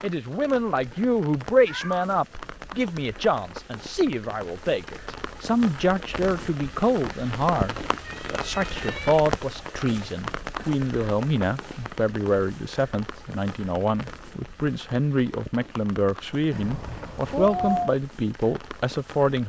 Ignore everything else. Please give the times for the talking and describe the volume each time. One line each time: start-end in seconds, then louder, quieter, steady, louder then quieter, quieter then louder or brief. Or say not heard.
0.0-19.4 steady.